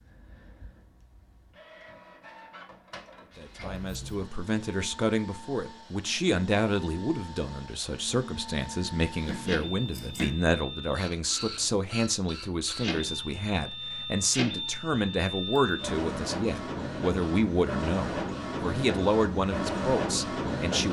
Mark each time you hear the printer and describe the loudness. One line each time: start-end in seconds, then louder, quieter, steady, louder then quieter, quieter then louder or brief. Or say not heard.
0.0-20.8 louder.